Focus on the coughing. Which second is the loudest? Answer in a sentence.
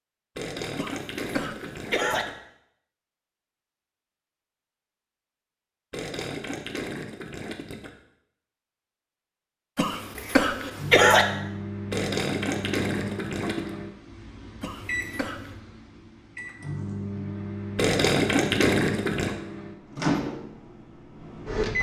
The loudest moment of the coughing is at 11 seconds.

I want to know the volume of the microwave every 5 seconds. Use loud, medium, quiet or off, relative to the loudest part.
off, off, medium, medium, loud.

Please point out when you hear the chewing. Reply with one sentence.
You can't hear the chewing here.